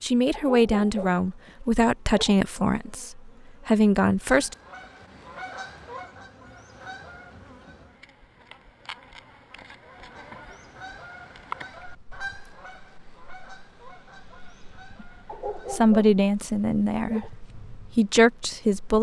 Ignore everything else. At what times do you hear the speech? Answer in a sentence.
You can hear the speech from 0.0 to 4.5 s and from 15.0 to 18.9 s.